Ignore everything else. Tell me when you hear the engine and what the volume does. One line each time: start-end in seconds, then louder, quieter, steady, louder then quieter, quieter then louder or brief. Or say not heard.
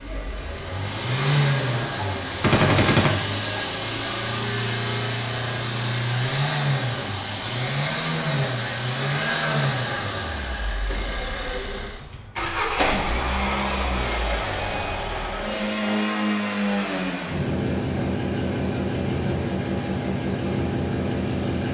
0.0-21.6 steady.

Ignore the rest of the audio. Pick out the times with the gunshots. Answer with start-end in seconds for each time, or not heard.
1.9-3.1.